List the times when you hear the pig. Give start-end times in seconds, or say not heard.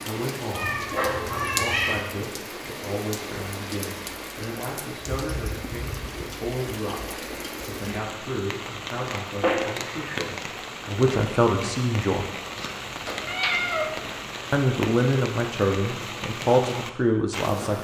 not heard.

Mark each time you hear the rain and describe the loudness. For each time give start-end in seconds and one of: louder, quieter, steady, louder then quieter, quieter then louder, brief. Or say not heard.
0.0-17.7 steady.